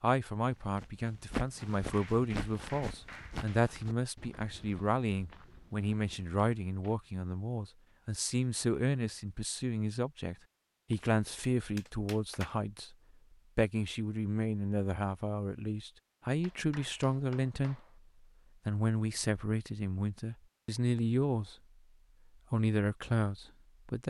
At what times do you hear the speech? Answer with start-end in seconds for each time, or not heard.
0.0-12.9, 13.6-17.8, 18.6-21.6, 22.5-24.0.